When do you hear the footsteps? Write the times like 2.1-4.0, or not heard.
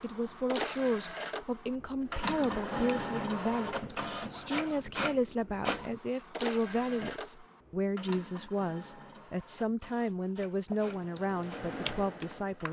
not heard.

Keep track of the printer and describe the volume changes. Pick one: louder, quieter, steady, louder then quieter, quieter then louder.
quieter.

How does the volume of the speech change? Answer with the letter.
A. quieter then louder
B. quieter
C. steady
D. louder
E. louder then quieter
C.